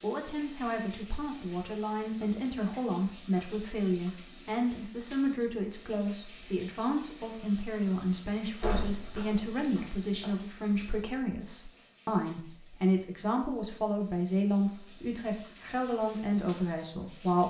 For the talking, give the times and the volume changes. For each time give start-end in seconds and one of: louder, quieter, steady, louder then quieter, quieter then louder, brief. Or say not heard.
0.0-17.4 steady.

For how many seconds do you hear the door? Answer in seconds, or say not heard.
2 s.